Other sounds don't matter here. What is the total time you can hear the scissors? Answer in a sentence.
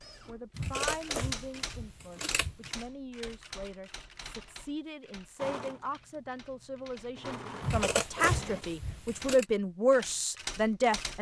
The scissors can be heard for 4 seconds in total.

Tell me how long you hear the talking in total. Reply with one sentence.
The talking can be heard for 11 seconds in total.